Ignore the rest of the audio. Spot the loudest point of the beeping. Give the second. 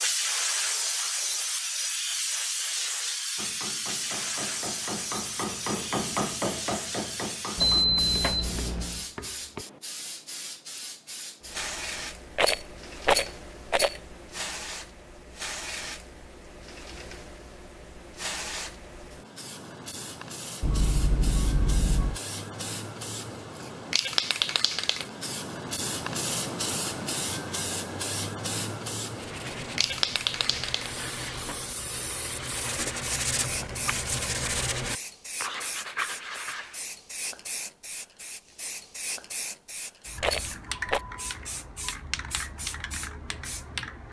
8 s.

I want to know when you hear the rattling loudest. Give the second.
13 s.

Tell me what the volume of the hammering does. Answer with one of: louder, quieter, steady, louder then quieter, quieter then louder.
louder then quieter.